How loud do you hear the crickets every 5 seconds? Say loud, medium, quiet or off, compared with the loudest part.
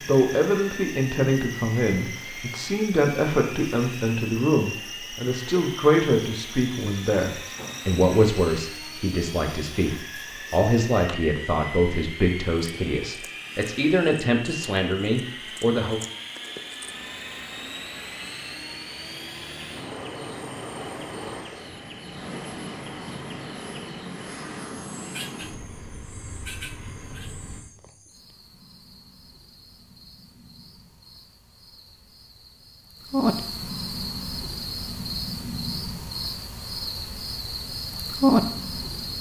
quiet, quiet, quiet, quiet, quiet, quiet, medium, loud.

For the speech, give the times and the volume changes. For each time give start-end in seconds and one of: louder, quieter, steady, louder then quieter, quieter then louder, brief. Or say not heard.
0.1-16.0 steady.